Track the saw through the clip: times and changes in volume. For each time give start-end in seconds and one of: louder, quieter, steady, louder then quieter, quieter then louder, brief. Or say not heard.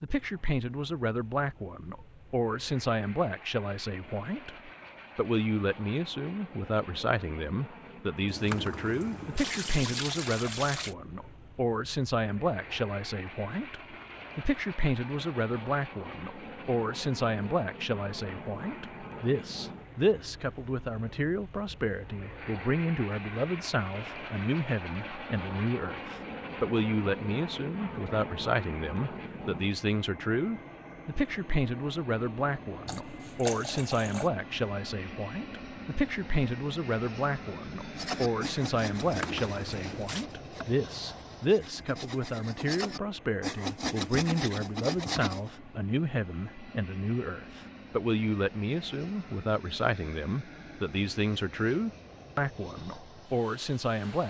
38.0-45.5 quieter then louder.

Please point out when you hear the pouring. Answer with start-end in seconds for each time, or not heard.
8.2-10.9, 32.9-34.3, 39.0-40.2.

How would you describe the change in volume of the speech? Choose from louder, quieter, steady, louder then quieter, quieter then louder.
steady.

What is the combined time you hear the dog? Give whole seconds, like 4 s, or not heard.
not heard.